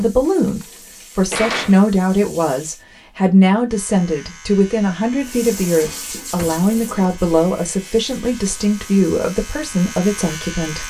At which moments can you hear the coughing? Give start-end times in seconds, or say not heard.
not heard.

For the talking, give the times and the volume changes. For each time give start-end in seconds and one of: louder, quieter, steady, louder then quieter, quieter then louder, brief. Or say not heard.
0.0-10.8 steady.